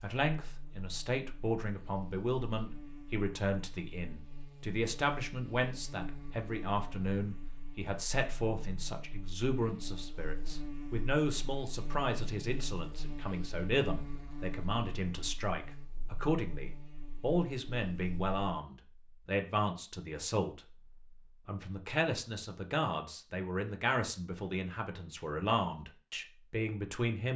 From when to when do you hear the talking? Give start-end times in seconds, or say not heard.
0.0-27.3.